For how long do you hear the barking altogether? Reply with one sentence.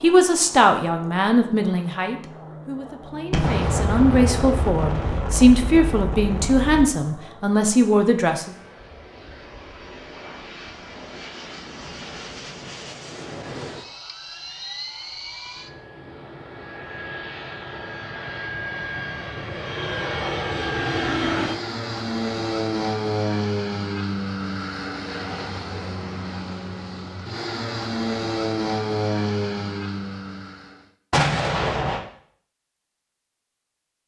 The barking can't be heard in this clip.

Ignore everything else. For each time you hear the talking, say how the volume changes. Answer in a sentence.
You can hear the talking from 0.0 to 8.6 s, getting quieter then louder.